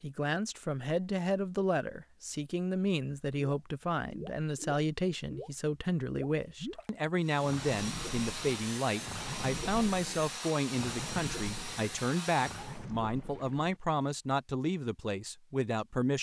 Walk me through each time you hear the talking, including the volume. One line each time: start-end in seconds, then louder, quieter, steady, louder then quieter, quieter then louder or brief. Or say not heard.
0.0-16.1 steady.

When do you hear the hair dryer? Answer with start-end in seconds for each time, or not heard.
7.2-12.8.